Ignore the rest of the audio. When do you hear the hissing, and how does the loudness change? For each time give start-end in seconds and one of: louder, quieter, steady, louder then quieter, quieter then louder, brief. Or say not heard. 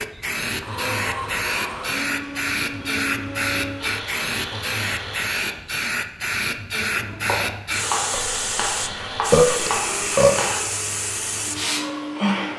0.0-12.5 steady.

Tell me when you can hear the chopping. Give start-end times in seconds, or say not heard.
6.9-10.6.